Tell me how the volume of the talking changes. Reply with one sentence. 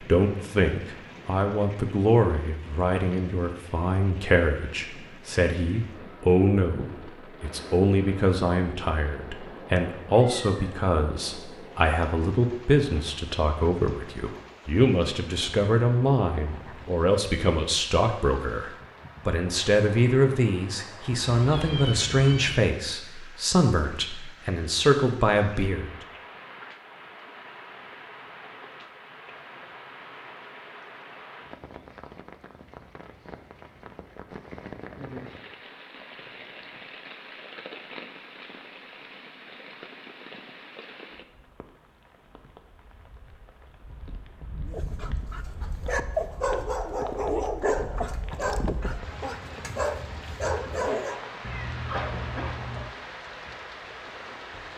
The volume of the talking stays about the same.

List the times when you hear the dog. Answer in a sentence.
You can hear the dog from 44.6 to 51.2 s.